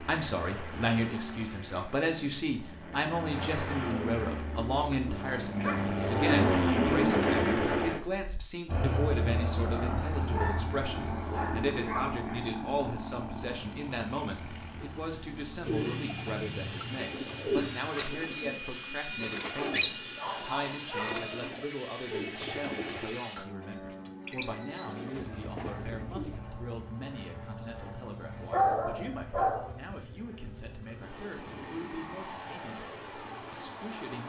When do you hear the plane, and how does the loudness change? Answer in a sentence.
You can hear the plane from 0.0 to 34.2 s, getting quieter.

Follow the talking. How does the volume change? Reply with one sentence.
The loudness of the talking goes down.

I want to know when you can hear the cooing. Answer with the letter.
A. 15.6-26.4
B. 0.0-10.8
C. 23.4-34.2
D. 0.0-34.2
A.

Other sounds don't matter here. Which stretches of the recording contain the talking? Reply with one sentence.
The talking can be heard from 0.0 to 34.2 s.